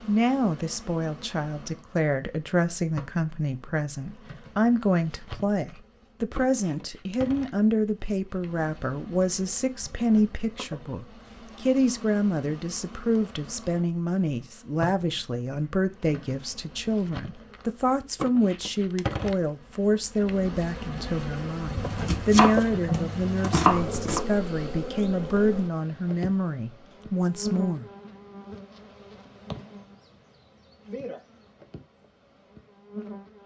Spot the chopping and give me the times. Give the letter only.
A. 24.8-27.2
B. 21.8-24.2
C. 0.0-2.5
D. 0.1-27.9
B.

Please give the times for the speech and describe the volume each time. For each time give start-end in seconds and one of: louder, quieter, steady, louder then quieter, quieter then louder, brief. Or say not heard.
0.1-27.9 steady.